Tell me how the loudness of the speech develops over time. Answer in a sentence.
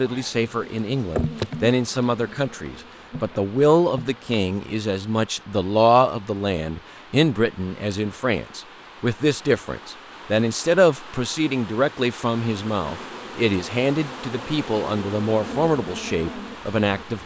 The volume of the speech stays about the same.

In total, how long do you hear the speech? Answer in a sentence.
The speech can be heard for 17 seconds in total.